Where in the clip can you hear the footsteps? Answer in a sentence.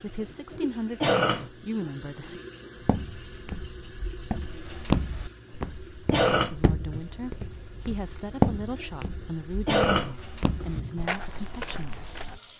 The footsteps can be heard from 2.8 to 12.4 s.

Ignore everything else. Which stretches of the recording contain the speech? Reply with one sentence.
You can hear the speech from 0.0 to 2.4 s and from 6.3 to 12.1 s.